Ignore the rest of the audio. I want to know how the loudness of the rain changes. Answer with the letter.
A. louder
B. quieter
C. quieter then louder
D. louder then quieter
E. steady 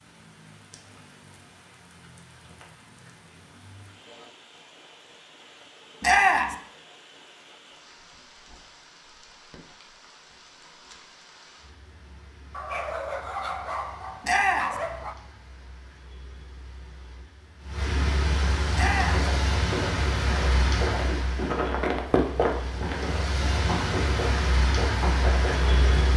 A.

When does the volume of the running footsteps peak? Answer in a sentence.
The volume of the running footsteps peaks at 22 seconds.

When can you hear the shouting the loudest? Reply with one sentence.
The volume of the shouting peaks at 6 seconds.